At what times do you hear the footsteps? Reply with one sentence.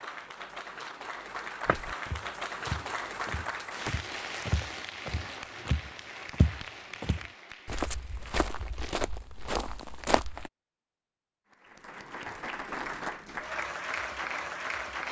The footsteps can be heard from 1.6 to 10.5 s.